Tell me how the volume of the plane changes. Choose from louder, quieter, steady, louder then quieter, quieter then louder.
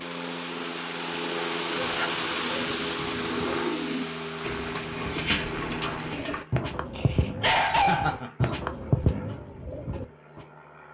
quieter.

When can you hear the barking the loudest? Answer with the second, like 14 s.
8 s.